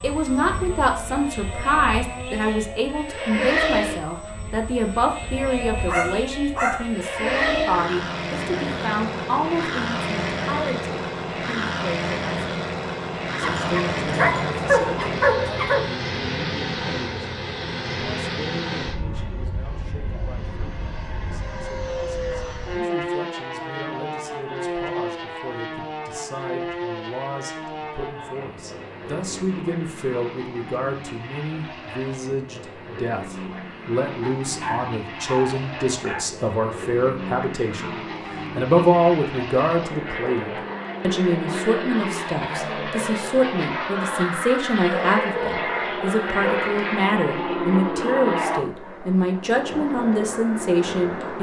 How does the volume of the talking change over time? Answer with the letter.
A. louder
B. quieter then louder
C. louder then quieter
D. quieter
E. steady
B.